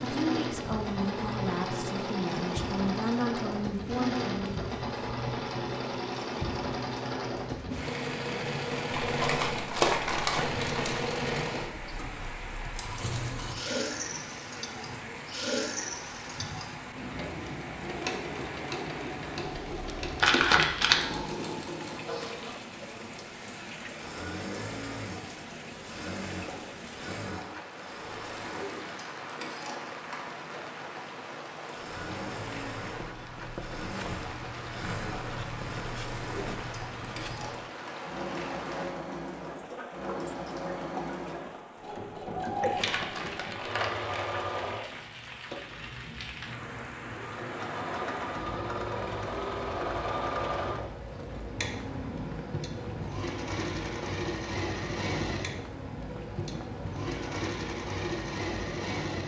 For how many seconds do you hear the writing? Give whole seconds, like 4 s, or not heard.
6 s.